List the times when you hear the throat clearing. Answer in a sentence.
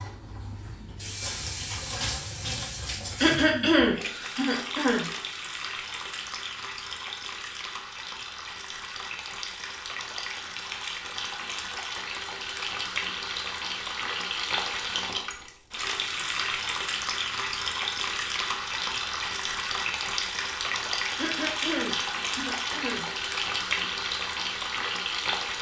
The throat clearing can be heard from 3.2 to 5.0 s and from 21.1 to 23.1 s.